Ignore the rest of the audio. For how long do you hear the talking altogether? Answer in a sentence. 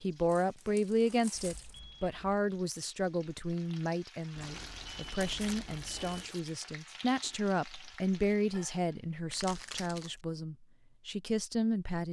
You can hear the talking for 12 seconds altogether.